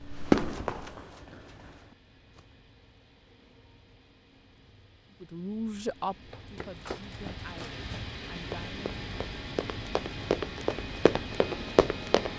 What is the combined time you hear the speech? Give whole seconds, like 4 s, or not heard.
4 s.